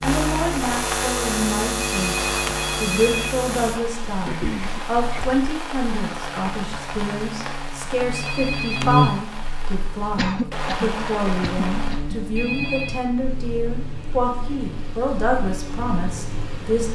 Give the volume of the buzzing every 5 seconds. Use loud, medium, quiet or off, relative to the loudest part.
loud, loud, medium, medium.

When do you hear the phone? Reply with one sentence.
You can hear the phone from 1.8 to 3.4 s, from 8.1 to 9.2 s and from 12.3 to 13.0 s.